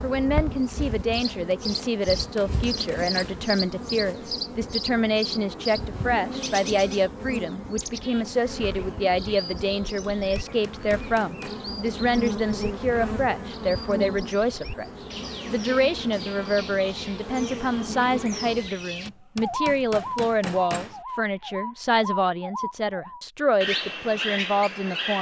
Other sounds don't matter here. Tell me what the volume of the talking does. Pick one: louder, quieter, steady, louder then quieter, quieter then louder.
steady.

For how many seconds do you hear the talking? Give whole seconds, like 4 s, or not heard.
25 s.